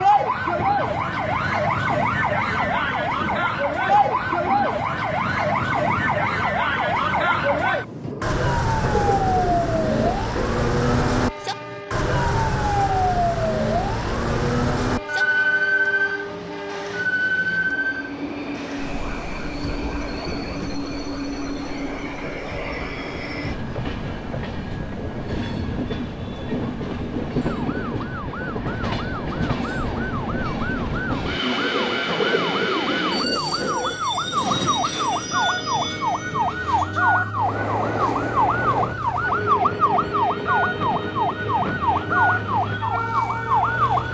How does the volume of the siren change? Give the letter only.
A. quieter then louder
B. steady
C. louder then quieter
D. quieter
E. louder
A.